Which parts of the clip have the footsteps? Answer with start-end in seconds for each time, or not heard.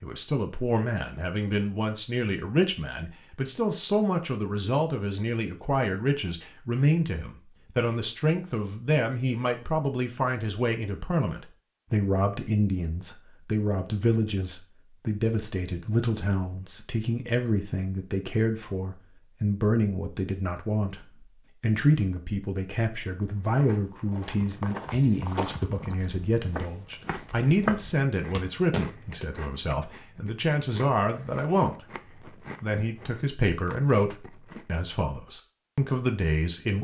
23.2-29.2.